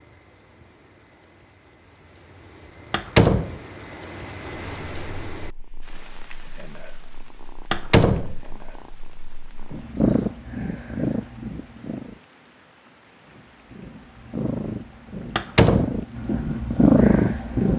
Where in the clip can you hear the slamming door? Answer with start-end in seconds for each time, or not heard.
2.9-3.5, 7.7-8.3, 15.3-16.0.